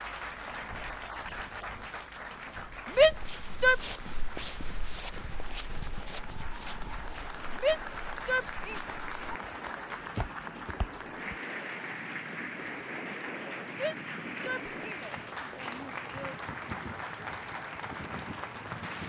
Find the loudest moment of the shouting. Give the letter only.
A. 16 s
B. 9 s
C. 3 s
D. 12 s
C.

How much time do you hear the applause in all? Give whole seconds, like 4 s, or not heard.
19 s.